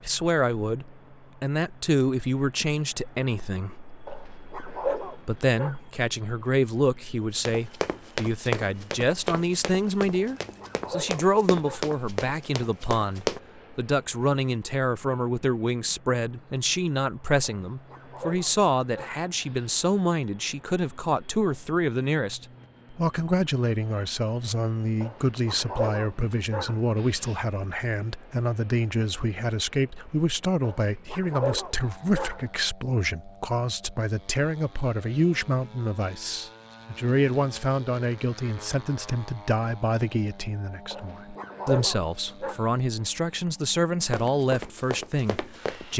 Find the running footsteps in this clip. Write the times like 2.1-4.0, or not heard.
7.3-13.4, 44.0-45.9.